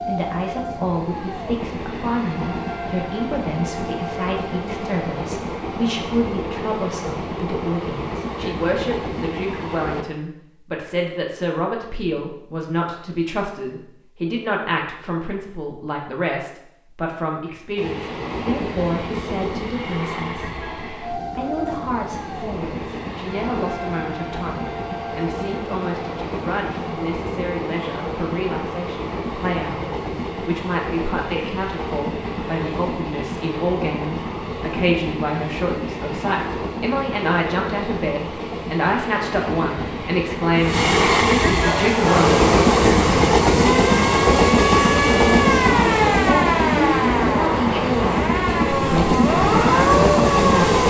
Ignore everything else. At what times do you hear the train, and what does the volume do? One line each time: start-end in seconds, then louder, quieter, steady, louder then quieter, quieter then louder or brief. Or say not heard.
0.0-10.1 steady
17.8-50.8 louder.